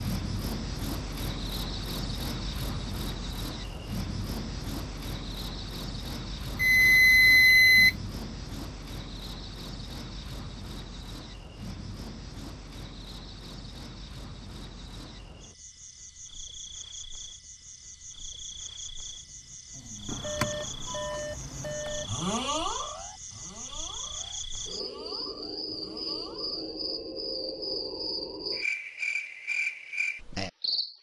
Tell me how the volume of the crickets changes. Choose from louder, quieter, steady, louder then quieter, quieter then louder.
quieter then louder.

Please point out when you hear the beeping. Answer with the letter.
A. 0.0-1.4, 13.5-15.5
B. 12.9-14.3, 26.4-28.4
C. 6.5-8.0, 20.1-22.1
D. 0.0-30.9
C.